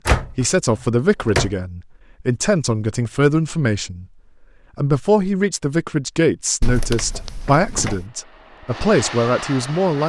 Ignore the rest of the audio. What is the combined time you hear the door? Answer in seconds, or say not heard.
3 s.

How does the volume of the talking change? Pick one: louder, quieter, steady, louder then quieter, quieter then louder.
steady.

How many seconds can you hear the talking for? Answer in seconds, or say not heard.
9 s.